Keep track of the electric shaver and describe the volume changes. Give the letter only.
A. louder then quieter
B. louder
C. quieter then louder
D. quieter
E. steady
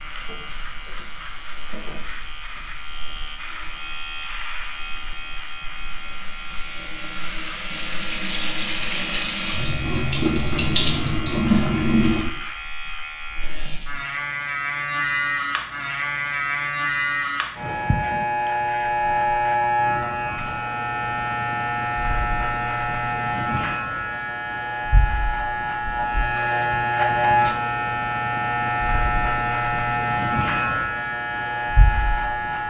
B.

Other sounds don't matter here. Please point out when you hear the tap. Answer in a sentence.
The tap can be heard from 0.0 to 12.2 s.